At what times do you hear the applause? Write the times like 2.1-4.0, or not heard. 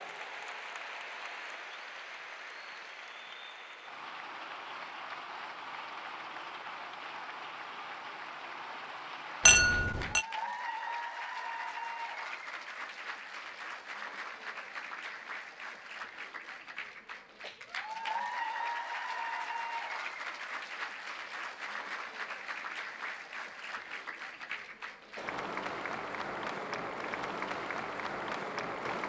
0.0-29.0.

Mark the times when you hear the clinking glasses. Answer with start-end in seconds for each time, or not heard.
9.4-10.2.